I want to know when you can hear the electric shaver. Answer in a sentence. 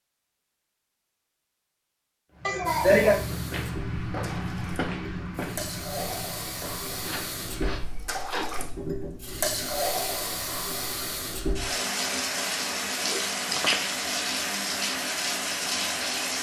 The electric shaver can't be heard in this clip.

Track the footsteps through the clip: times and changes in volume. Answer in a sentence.
The footsteps can be heard from 2.3 to 8.0 s, getting quieter.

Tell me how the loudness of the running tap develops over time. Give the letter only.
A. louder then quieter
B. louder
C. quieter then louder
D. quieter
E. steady
B.